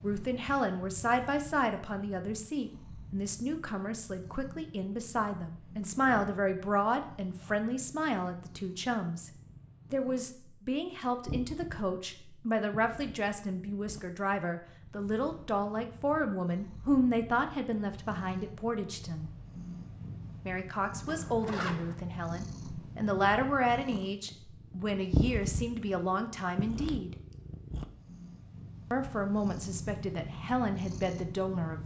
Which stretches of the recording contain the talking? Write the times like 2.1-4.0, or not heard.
0.0-9.3, 9.9-19.3, 20.4-27.1, 28.9-31.8.